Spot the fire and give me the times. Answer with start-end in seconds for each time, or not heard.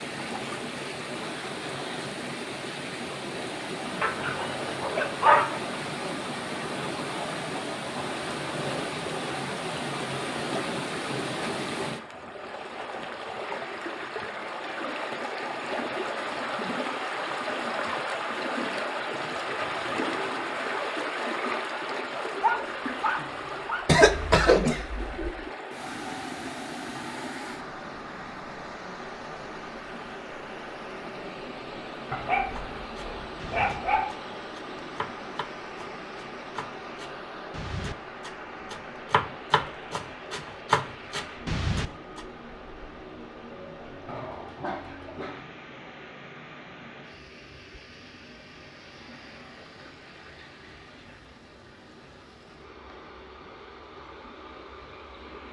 not heard.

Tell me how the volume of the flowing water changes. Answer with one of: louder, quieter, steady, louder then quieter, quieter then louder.
quieter.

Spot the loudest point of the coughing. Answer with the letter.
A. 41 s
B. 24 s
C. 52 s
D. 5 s
B.